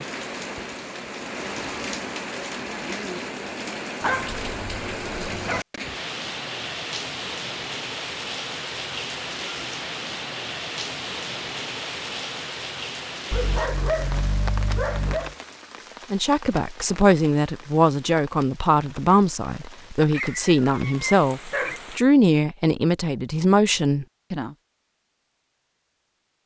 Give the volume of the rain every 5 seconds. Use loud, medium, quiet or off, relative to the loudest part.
loud, loud, loud, medium, medium, off.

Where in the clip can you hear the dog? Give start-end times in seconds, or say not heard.
4.0-5.7, 13.3-15.3, 20.1-21.8.